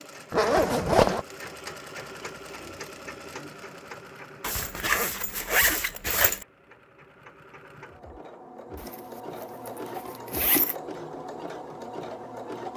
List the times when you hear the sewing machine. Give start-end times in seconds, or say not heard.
0.0-12.7.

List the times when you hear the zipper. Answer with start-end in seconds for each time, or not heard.
0.3-1.2, 4.4-6.5, 8.8-10.8.